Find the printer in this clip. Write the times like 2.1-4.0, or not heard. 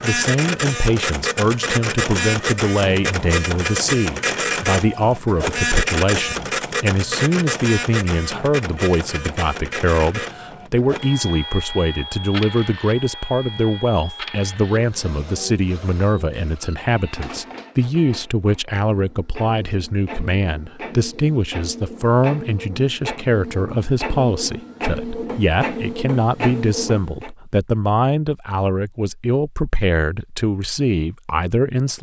0.0-27.3.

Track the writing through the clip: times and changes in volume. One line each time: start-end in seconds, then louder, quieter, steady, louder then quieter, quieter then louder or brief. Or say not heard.
not heard.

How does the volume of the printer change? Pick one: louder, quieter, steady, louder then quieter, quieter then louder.
quieter then louder.